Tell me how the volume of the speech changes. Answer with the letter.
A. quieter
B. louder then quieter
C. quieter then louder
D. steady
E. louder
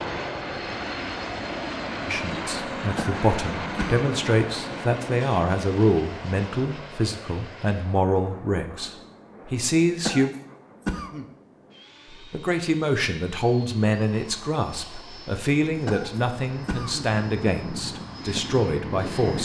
D.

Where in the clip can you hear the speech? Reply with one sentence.
The speech can be heard from 2.0 to 10.3 s and from 12.1 to 19.3 s.